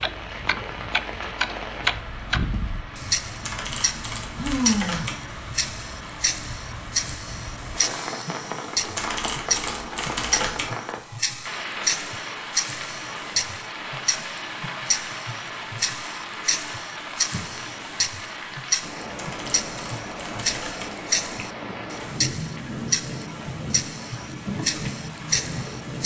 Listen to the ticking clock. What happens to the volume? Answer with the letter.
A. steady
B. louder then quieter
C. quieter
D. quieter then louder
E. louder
A.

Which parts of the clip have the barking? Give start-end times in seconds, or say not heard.
not heard.